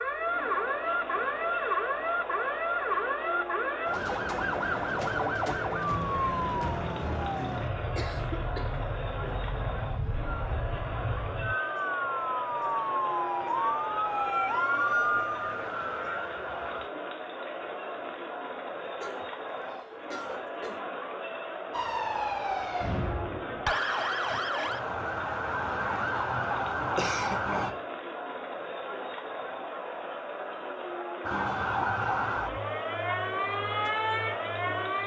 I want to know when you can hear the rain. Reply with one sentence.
You can't hear the rain here.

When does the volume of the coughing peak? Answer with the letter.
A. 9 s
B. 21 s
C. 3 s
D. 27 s
D.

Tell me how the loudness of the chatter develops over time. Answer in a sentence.
The loudness of the chatter stays about the same.